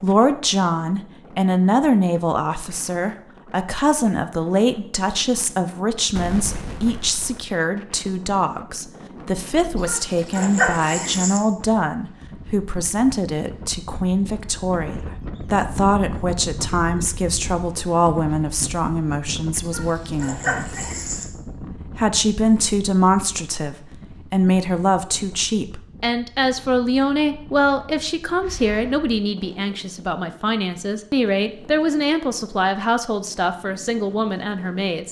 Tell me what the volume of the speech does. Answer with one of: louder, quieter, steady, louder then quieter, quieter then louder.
steady.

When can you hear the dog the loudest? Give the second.
11 s.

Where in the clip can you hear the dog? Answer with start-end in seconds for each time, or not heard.
9.8-11.4, 19.6-21.2.